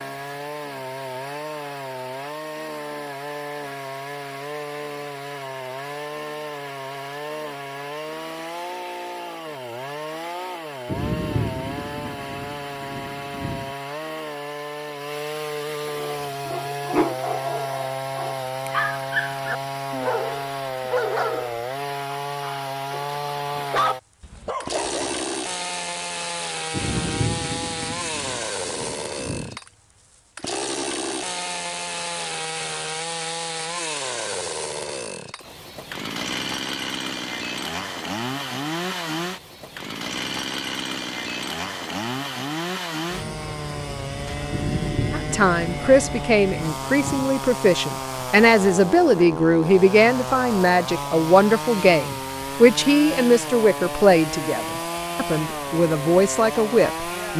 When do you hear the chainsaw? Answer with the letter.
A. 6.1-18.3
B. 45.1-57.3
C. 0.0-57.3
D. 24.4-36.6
C.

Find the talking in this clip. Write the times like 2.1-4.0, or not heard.
45.1-57.3.